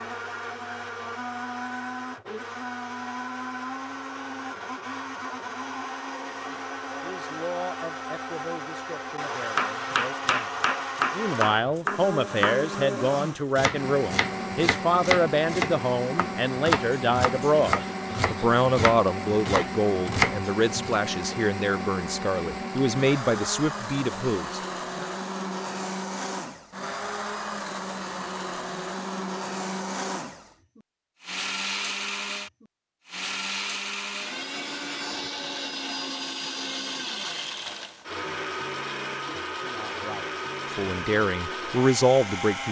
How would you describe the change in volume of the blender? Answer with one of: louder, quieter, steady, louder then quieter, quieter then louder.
steady.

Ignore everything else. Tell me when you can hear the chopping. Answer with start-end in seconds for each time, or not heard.
9.6-21.0.